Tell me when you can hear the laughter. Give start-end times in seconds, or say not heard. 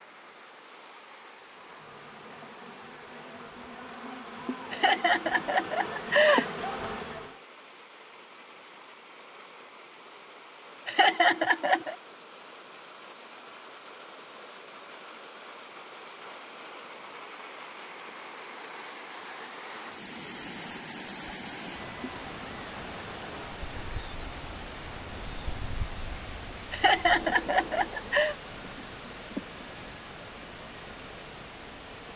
4.7-6.5, 10.8-11.9, 26.7-28.4.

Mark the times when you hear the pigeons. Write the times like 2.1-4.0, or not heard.
not heard.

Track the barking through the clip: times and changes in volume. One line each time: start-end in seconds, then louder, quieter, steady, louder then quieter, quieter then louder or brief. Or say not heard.
not heard.